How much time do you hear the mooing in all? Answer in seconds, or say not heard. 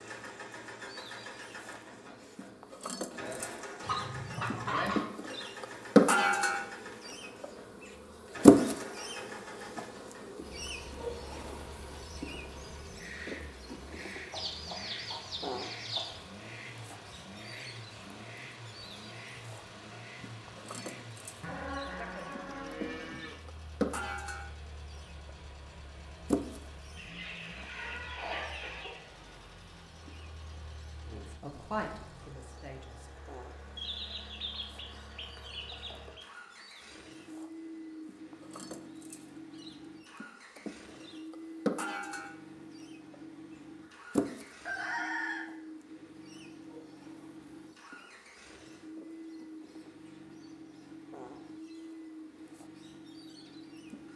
2 s.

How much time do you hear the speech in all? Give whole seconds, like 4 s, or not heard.
2 s.